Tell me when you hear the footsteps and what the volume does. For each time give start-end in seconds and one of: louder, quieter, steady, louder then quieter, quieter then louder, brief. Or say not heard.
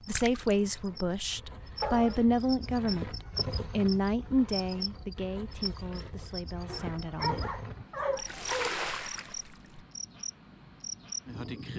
not heard.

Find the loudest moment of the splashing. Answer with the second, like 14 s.
9 s.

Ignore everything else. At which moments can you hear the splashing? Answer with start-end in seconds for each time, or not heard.
0.1-0.6, 8.2-9.8.